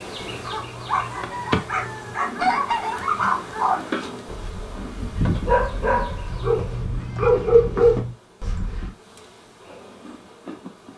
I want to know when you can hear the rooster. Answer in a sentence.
The rooster can be heard from 0.9 to 3.0 s.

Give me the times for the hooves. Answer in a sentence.
You can't hear the hooves here.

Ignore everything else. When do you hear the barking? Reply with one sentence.
You can hear the barking from 0.4 to 8.9 s.